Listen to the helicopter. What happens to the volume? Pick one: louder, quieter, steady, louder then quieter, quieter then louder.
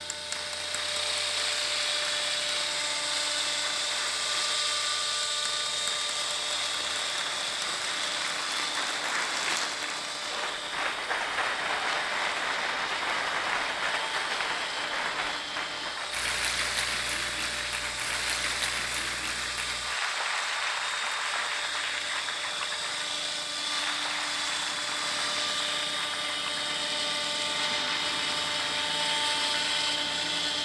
quieter then louder.